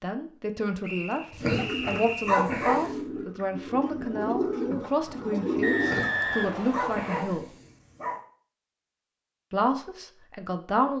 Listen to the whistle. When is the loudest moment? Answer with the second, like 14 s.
6 s.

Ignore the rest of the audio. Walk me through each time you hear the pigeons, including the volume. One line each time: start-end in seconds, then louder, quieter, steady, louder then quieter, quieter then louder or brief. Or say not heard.
1.4-6.7 louder.